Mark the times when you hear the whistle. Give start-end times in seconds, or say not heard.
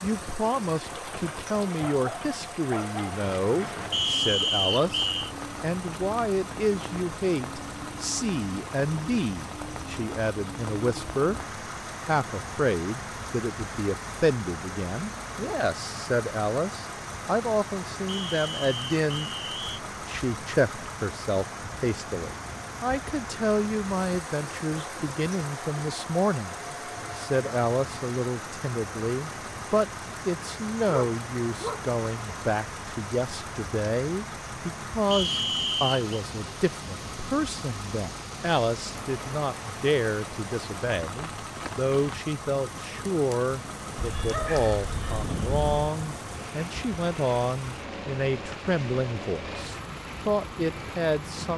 3.9-5.3, 18.1-19.8, 35.1-36.1.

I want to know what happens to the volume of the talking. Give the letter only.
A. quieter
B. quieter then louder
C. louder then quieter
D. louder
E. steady
E.